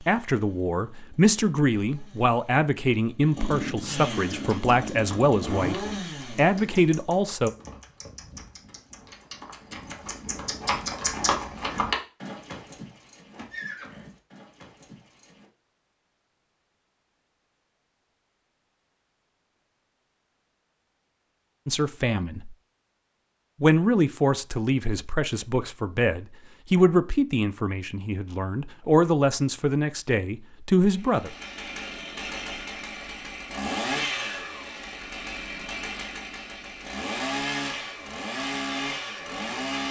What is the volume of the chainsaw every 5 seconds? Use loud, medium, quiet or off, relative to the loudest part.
medium, loud, off, off, off, off, loud, loud.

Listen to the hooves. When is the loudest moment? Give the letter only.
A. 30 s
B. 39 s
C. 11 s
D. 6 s
C.